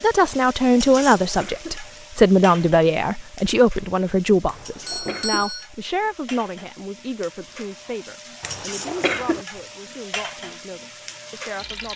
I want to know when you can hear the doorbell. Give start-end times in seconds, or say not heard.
4.4-5.7.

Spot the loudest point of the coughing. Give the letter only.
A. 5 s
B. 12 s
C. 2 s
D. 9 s
D.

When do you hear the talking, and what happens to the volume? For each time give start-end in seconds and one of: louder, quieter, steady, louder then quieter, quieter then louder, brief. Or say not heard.
0.0-11.9 quieter.